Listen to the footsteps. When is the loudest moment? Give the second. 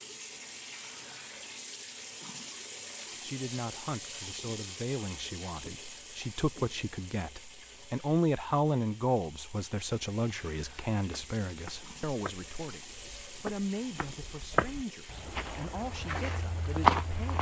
17 s.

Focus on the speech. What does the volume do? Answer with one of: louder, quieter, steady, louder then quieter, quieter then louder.
louder then quieter.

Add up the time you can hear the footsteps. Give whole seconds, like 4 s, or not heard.
6 s.